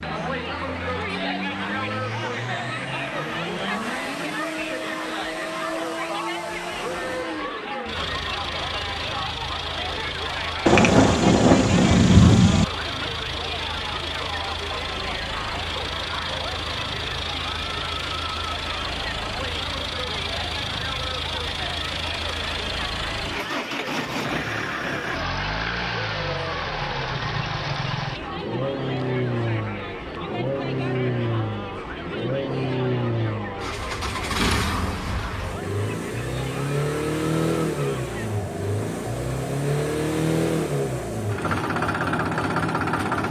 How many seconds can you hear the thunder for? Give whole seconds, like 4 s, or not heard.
2 s.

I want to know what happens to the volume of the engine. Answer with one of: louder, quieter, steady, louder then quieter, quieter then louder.
louder.